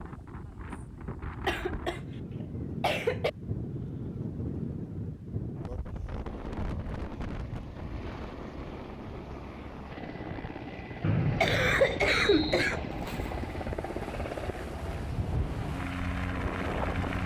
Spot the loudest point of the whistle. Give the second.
11 s.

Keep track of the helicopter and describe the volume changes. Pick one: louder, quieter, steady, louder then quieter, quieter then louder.
louder.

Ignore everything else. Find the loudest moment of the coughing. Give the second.
12 s.